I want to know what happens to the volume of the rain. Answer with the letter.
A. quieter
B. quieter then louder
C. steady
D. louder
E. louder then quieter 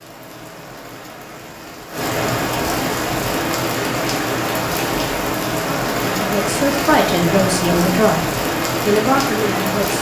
D.